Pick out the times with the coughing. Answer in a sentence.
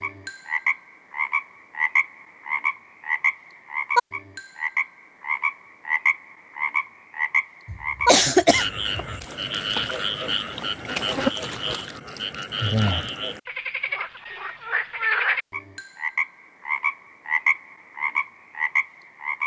You can hear the coughing from 7.7 to 9.2 s.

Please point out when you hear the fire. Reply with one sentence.
The fire can't be heard in this clip.